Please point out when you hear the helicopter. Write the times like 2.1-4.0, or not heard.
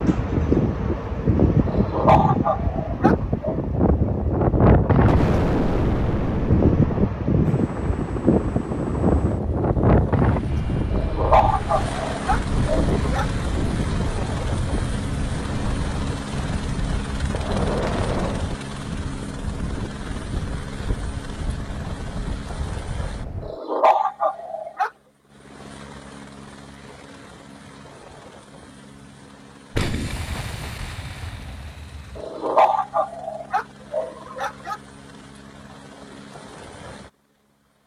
7.5-37.8.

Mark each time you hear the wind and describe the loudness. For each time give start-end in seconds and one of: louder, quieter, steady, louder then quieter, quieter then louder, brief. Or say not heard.
0.0-23.6 quieter.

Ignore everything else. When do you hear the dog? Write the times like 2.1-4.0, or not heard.
1.6-3.6, 10.9-13.2, 23.4-24.9, 32.1-34.8.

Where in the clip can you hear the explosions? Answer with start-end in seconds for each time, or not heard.
5.0-7.0, 17.3-18.6, 29.8-32.1.